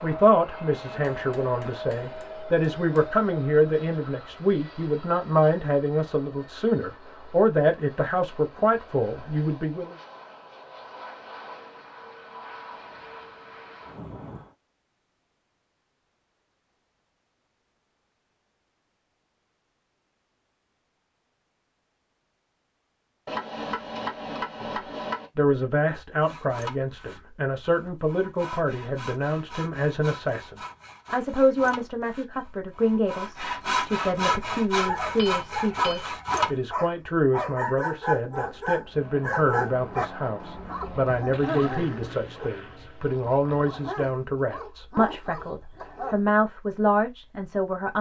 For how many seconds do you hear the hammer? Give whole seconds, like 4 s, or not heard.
5 s.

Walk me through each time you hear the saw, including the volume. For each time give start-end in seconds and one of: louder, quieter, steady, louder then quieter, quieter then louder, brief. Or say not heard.
26.2-36.6 louder.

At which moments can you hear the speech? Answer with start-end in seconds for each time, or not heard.
0.0-9.9, 25.4-47.9.